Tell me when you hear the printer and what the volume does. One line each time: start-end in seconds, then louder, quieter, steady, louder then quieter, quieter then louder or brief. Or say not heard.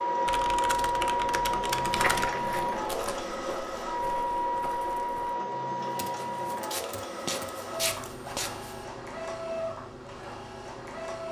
0.0-11.2 quieter.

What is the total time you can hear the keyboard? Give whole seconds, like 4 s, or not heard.
4 s.